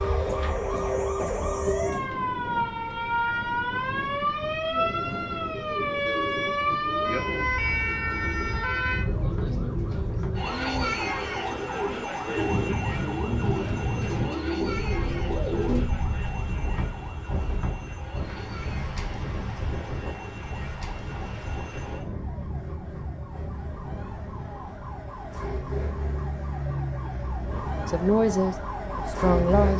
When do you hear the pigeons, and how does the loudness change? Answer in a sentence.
The pigeons can be heard from 4.7 to 15.9 s, getting louder.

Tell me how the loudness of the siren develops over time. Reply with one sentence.
The volume of the siren goes down, then up.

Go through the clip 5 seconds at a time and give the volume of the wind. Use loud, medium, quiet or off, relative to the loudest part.
medium, medium, loud, loud, medium, medium.